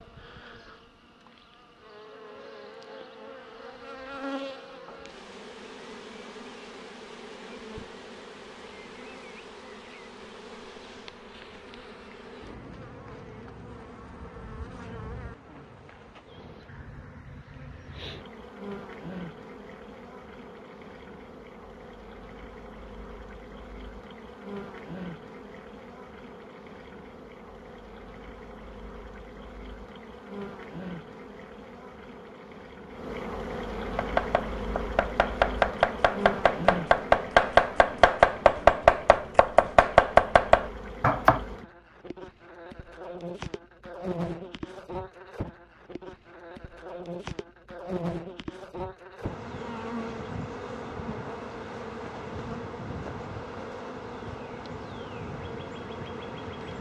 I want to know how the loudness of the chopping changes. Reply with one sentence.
The loudness of the chopping goes up.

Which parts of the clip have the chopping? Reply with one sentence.
You can hear the chopping from 34.0 to 41.4 s.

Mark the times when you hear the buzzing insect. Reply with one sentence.
The buzzing insect can be heard from 0.0 to 56.7 s.